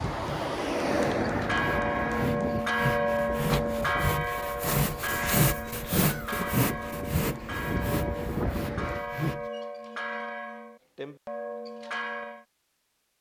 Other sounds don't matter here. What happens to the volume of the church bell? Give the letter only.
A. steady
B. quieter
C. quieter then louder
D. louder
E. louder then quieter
B.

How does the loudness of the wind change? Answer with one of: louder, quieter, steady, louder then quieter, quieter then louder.
quieter then louder.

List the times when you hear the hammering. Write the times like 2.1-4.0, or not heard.
not heard.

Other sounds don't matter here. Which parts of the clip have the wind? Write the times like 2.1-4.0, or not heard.
0.0-9.1.